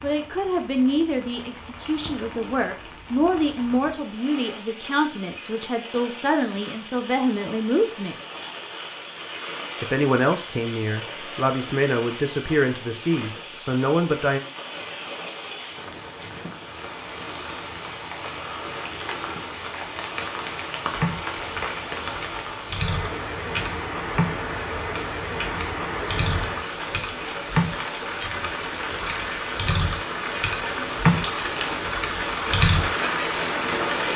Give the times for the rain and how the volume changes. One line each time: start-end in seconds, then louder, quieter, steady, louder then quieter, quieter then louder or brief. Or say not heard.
0.0-34.1 louder.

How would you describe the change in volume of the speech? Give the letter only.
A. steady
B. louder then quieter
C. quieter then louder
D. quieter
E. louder
A.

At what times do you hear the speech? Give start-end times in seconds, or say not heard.
0.0-8.2, 9.8-14.4.